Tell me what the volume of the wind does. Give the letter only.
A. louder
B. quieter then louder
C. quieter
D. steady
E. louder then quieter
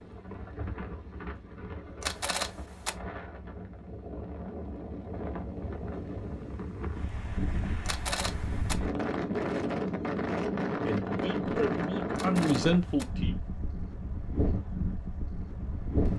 E.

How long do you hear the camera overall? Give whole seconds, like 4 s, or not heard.
3 s.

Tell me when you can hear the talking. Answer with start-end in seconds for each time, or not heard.
10.8-13.3.